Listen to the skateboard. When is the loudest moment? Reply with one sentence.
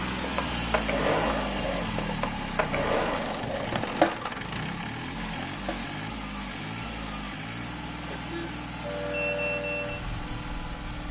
The loudest moment of the skateboard is at 4 seconds.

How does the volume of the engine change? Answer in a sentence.
The loudness of the engine goes down.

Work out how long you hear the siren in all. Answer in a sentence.
You can hear the siren for 2 seconds altogether.